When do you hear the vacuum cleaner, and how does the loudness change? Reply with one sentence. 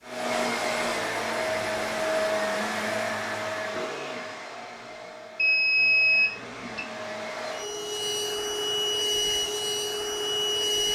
You can hear the vacuum cleaner from 0.0 to 10.8 s, getting quieter then louder.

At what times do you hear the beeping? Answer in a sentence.
The beeping can be heard from 5.3 to 6.8 s.